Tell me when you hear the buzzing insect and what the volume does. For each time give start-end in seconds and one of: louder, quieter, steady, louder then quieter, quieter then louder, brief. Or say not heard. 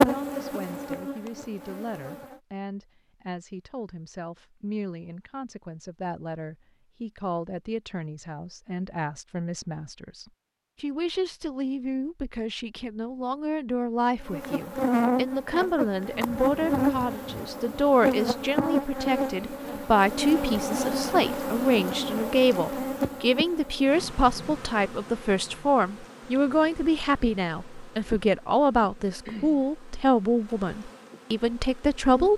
0.0-2.4 brief
14.2-32.3 quieter.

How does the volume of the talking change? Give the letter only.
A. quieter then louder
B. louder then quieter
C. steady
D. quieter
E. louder
E.